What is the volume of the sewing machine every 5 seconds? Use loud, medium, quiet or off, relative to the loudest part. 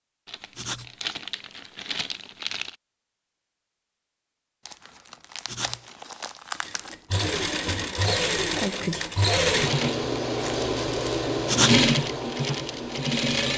off, loud, loud.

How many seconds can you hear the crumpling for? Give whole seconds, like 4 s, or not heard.
6 s.